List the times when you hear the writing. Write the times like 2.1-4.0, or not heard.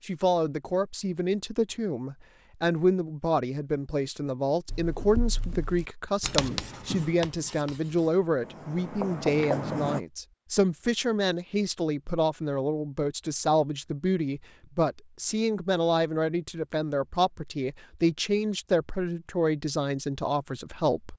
4.7-10.0.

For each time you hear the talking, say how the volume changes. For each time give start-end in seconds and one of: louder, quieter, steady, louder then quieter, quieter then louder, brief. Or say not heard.
0.1-21.1 steady.